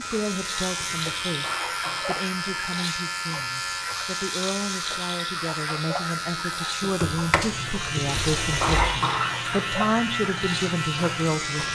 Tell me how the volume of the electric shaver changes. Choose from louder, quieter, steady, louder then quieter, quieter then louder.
steady.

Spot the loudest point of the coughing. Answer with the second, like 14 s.
9 s.